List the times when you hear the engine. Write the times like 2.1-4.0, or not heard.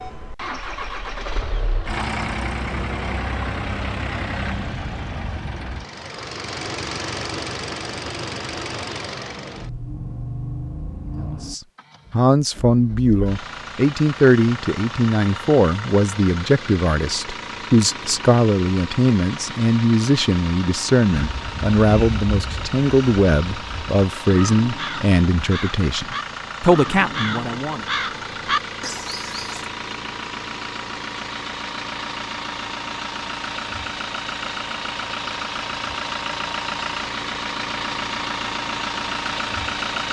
0.0-40.0.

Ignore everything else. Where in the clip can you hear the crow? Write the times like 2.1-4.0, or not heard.
21.1-29.6.